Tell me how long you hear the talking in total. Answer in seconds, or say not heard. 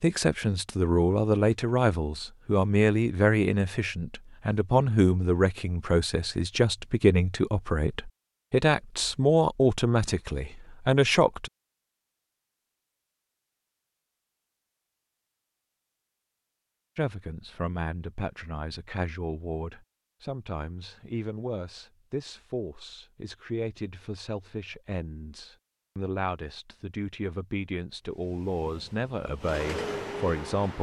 25 s.